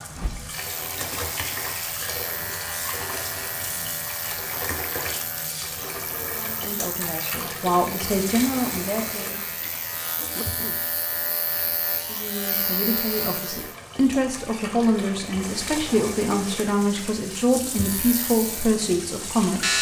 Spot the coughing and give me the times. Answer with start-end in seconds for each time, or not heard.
9.9-10.8.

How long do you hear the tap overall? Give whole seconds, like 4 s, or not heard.
20 s.